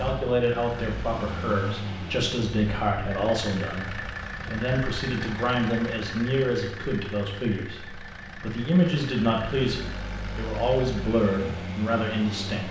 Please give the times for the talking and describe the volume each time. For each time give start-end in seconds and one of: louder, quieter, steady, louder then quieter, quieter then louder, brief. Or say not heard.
0.0-12.6 steady.